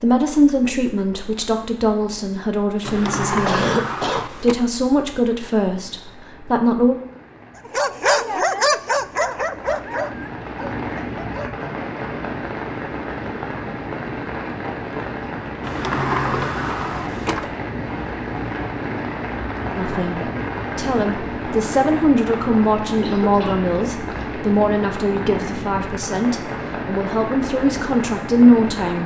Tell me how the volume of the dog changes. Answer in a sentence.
The loudness of the dog goes down.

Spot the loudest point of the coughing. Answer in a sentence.
The loudest moment of the coughing is at 4 seconds.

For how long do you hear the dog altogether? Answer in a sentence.
You can hear the dog for 4 seconds altogether.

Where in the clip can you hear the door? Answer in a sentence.
You can hear the door from 2.9 to 4.6 s and from 15.6 to 17.5 s.